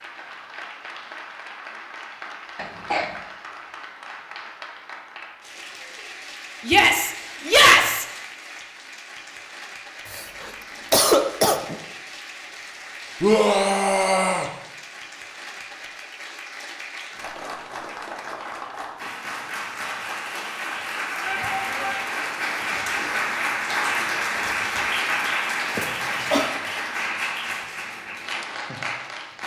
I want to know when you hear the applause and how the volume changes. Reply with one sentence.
The applause can be heard from 0.0 to 29.4 s, getting louder.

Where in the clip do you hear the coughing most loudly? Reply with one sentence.
The volume of the coughing peaks at 11 seconds.